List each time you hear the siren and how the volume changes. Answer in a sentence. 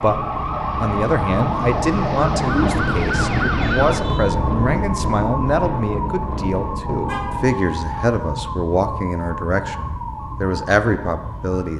You can hear the siren from 0.0 to 11.7 s, getting quieter.